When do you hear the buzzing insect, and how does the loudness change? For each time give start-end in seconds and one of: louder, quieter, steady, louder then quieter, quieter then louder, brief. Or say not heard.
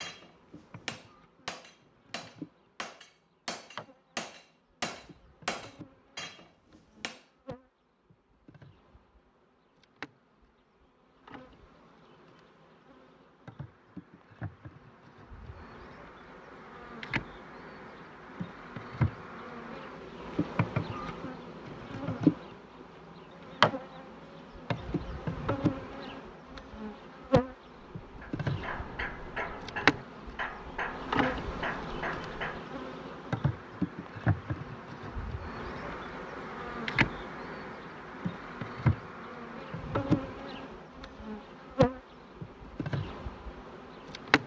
0.0-44.4 louder.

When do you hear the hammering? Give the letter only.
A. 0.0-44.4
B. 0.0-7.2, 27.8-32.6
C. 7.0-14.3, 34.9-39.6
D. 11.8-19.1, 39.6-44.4
B.